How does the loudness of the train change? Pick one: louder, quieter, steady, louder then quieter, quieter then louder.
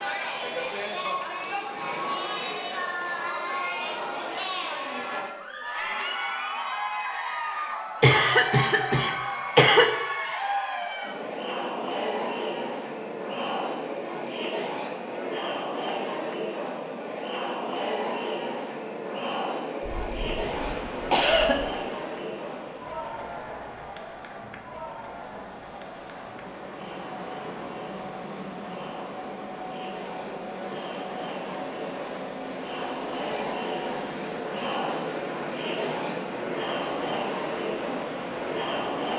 louder.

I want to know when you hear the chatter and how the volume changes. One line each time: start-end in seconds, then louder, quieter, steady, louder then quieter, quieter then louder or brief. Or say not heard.
0.0-39.1 quieter then louder.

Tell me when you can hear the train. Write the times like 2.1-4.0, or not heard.
20.5-39.1.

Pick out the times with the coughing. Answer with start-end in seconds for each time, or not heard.
8.0-9.9, 19.9-21.6.